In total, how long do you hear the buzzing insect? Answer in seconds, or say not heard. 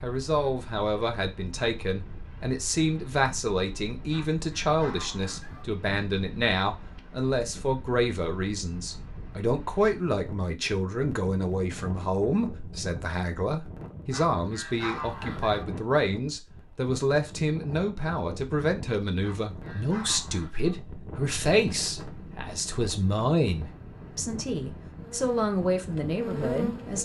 2 s.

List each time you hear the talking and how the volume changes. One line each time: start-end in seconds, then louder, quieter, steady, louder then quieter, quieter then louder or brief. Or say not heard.
0.0-27.0 steady.